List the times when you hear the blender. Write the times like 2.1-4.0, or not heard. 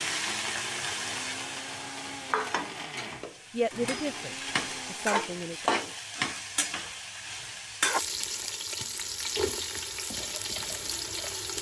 0.0-5.7.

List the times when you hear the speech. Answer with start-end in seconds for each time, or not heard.
3.5-6.0.